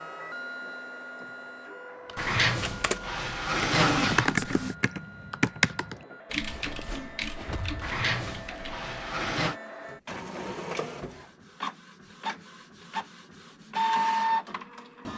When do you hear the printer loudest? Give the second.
14 s.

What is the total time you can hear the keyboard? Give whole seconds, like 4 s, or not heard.
7 s.